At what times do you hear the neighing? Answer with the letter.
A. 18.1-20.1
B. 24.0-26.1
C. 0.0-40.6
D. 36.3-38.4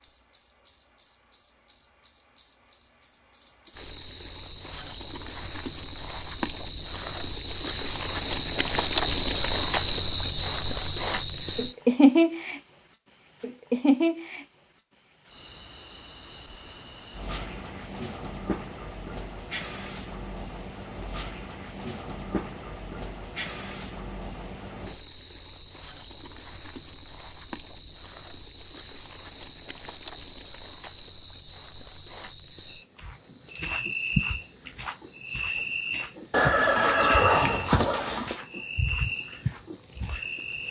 D.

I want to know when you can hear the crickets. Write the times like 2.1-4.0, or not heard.
0.0-40.6.